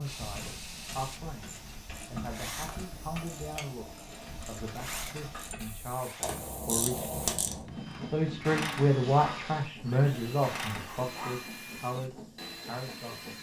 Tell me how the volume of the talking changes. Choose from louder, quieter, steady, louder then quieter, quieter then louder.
louder then quieter.